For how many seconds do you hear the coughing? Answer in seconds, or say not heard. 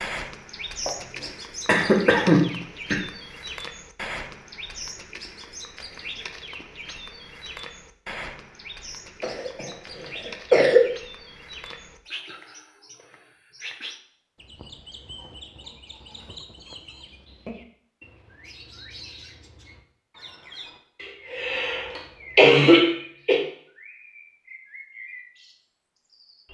6 s.